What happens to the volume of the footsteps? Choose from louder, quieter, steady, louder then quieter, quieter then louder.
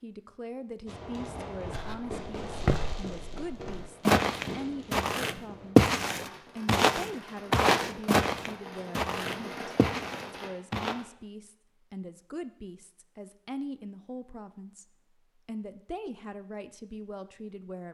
louder then quieter.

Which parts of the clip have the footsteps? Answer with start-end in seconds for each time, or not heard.
1.6-11.0.